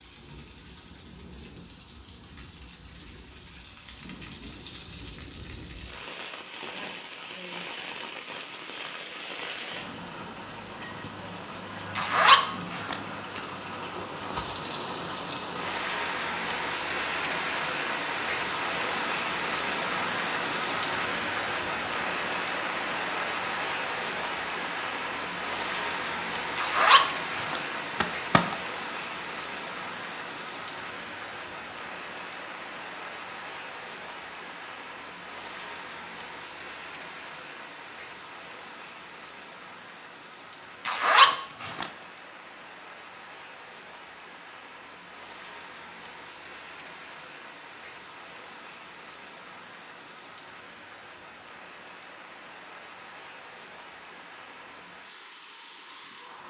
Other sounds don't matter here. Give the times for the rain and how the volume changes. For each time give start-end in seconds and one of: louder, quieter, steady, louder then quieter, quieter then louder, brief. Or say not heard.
0.0-56.4 louder then quieter.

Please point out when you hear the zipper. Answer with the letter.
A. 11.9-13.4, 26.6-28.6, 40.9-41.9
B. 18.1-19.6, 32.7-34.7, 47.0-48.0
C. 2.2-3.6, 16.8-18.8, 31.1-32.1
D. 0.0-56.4
A.